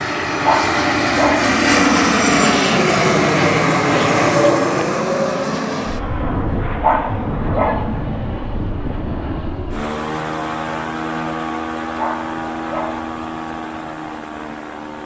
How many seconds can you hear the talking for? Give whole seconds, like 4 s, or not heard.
not heard.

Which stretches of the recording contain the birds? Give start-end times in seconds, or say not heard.
not heard.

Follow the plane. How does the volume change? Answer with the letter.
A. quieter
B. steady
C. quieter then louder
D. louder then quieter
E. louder
A.